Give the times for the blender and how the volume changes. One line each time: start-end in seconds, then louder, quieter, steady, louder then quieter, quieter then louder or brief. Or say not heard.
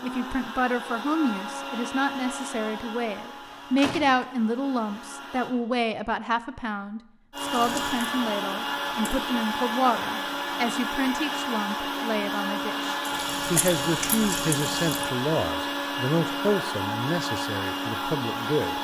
0.0-5.5 quieter
7.3-18.7 steady.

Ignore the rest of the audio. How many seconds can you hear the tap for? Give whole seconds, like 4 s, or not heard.
4 s.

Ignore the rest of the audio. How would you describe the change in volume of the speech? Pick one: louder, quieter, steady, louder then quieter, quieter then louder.
steady.